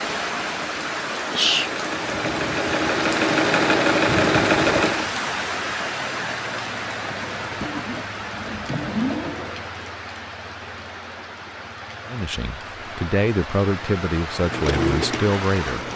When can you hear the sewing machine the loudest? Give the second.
4 s.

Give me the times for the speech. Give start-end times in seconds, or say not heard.
12.1-15.8.